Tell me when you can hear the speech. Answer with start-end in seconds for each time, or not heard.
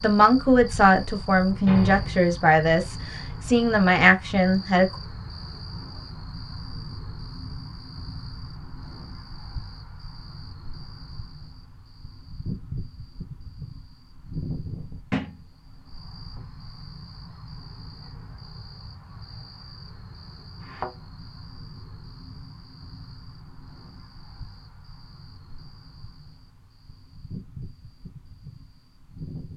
0.0-4.8.